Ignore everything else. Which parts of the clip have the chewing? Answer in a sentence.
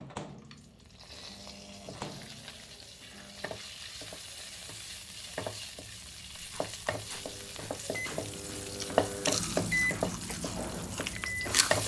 You can hear the chewing from 6.5 to 11.8 s.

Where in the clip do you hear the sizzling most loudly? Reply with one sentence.
The loudest moment of the sizzling is at 9 seconds.